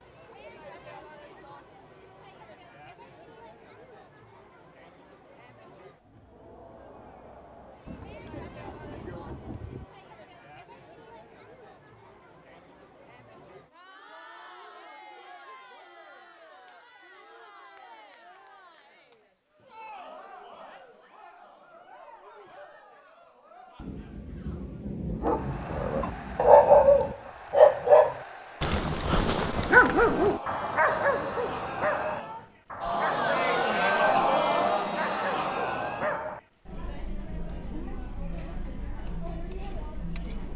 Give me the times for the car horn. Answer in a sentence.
You can't hear the car horn here.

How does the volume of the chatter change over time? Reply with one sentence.
The loudness of the chatter goes up.